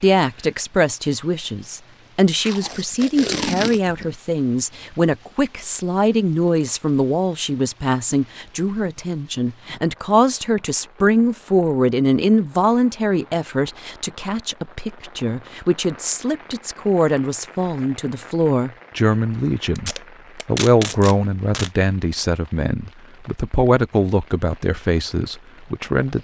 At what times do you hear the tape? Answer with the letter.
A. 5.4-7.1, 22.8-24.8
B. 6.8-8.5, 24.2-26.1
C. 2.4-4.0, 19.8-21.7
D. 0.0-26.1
C.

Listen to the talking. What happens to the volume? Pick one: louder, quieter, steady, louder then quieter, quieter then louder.
steady.